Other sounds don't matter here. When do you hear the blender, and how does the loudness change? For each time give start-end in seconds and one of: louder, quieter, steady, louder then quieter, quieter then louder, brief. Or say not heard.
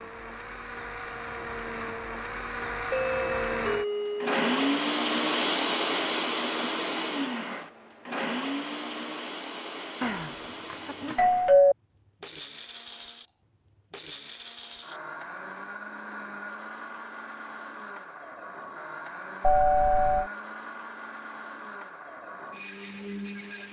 0.0-23.6 quieter.